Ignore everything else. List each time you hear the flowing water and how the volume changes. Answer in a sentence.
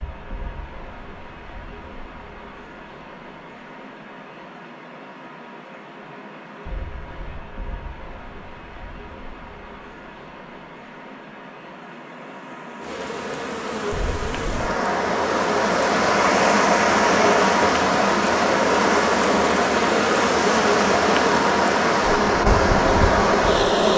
You can hear the flowing water from 0.0 to 23.9 s, getting louder.